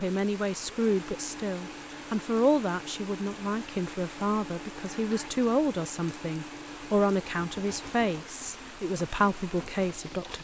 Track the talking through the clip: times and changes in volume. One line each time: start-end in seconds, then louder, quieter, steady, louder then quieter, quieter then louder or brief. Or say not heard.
0.0-10.4 steady.